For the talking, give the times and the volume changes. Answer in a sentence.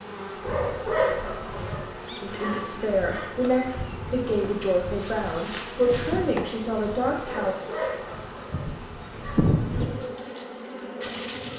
You can hear the talking from 2.2 to 7.5 s, at a steady volume.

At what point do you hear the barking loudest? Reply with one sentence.
The loudest moment of the barking is at 1 second.